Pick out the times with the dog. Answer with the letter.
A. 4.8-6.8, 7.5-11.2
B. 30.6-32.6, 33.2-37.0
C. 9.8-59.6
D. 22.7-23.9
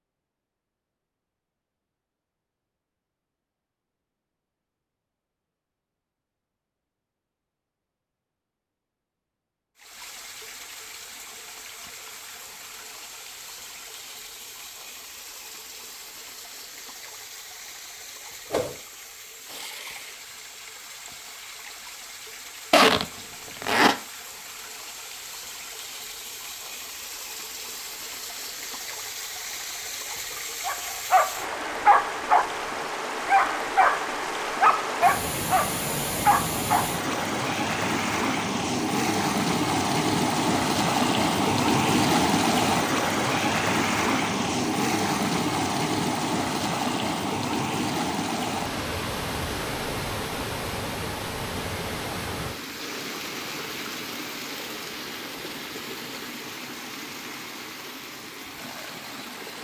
B.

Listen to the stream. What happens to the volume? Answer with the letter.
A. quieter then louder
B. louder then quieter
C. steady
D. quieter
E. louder
B.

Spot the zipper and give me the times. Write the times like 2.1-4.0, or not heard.
22.7-23.9.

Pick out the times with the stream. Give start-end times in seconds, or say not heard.
9.8-59.6.